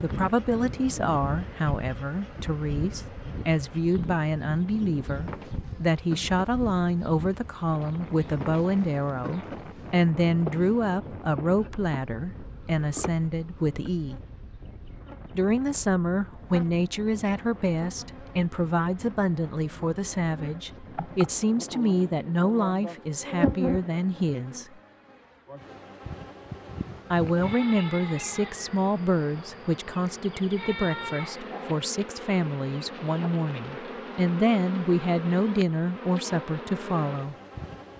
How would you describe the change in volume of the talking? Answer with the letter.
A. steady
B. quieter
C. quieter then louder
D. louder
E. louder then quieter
A.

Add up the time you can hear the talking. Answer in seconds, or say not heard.
34 s.